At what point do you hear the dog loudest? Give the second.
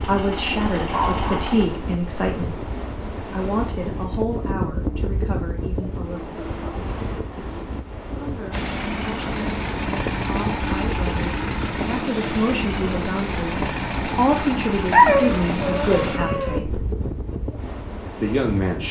15 s.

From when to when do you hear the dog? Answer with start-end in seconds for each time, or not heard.
0.9-1.5, 14.9-16.6.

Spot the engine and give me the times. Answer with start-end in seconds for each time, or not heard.
0.0-1.7, 8.5-16.2.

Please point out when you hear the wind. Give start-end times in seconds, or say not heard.
0.0-18.8.